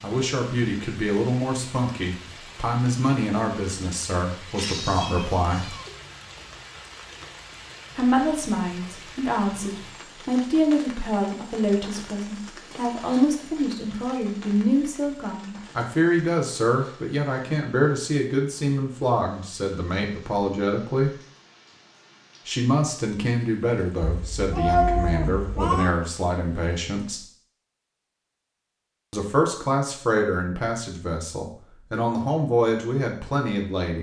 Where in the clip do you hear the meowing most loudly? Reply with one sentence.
The volume of the meowing peaks at 25 seconds.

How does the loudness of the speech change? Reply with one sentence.
The loudness of the speech stays about the same.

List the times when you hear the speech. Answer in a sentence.
The speech can be heard from 0.0 to 5.8 s, from 8.0 to 21.1 s, from 22.4 to 27.2 s and from 29.1 to 33.9 s.